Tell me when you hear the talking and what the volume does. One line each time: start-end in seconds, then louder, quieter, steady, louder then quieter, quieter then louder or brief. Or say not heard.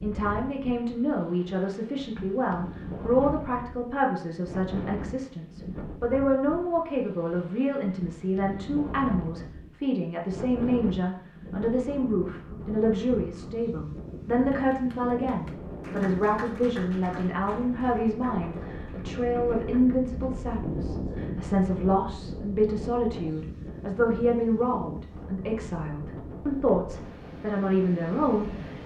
0.0-28.8 steady.